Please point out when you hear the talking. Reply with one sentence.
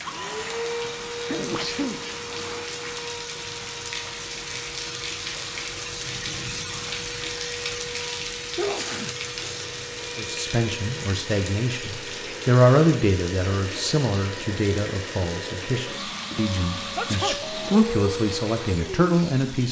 The talking can be heard from 10.2 to 19.6 s.